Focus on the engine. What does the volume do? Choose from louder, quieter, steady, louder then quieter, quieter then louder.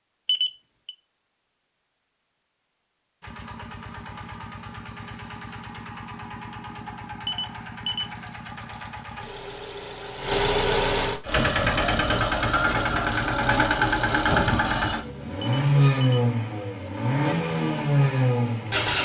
louder.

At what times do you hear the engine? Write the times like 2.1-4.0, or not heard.
3.2-18.9.